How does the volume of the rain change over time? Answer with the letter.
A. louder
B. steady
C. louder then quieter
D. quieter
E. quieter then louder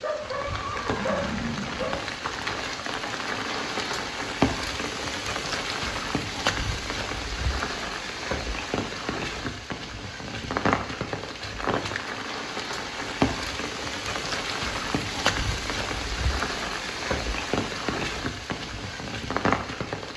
B.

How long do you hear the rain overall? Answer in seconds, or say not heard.
20 s.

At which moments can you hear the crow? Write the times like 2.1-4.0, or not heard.
not heard.